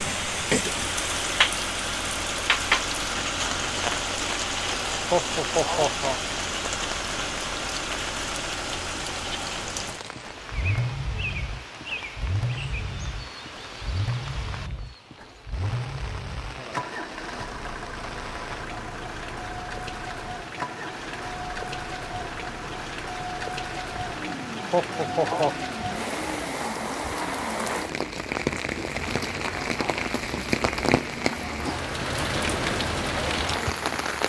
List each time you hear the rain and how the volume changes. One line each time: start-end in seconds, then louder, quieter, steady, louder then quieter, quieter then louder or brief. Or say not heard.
0.0-34.2 quieter then louder.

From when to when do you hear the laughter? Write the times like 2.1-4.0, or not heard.
5.1-6.2, 24.7-25.6.